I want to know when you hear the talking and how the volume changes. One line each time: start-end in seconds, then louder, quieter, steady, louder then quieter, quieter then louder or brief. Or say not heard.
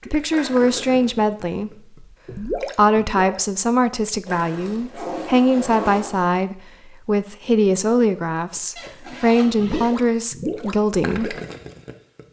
0.1-11.3 steady.